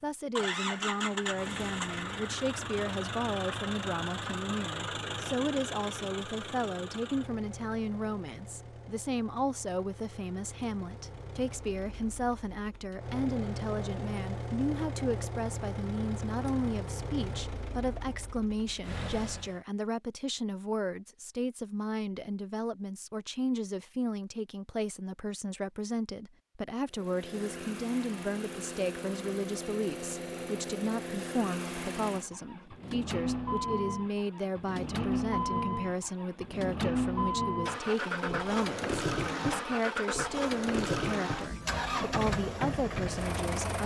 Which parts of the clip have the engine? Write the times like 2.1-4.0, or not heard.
0.3-19.6, 26.9-43.8.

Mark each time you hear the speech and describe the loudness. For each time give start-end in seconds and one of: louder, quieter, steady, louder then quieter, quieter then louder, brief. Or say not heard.
0.0-43.8 steady.